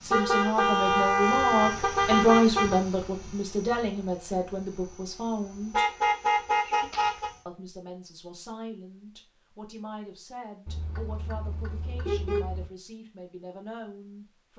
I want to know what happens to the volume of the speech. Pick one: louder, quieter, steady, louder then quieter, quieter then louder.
quieter.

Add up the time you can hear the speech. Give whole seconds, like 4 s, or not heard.
13 s.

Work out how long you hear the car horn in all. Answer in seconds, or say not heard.
6 s.